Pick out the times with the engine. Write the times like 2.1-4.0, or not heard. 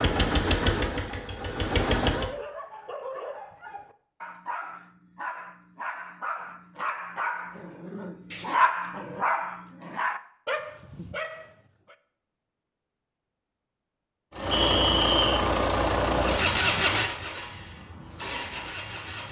0.0-2.4, 14.3-19.2.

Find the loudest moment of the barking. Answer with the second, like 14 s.
9 s.